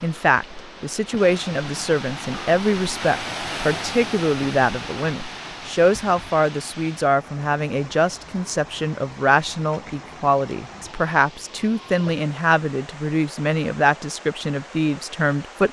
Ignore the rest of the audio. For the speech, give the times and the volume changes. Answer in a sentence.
You can hear the speech from 0.0 to 15.6 s, at a steady volume.